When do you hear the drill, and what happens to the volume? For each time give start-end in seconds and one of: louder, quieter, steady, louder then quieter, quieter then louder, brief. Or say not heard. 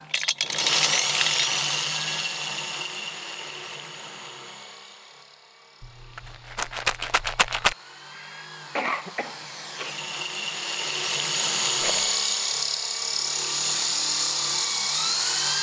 0.0-15.5 quieter then louder.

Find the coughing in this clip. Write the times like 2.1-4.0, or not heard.
8.1-9.9.